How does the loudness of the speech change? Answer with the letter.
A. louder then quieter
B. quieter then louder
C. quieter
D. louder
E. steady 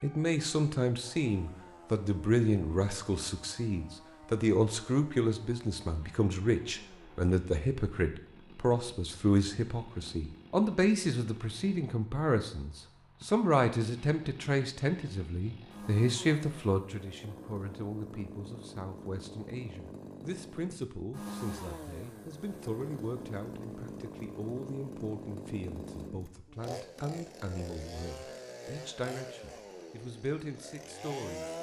C.